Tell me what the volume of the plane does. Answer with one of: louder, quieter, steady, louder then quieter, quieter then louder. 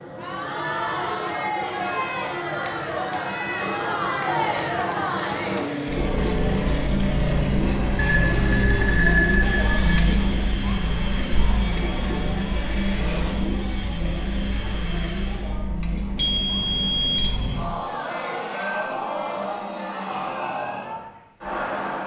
louder then quieter.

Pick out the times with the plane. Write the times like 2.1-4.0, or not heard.
0.0-15.6.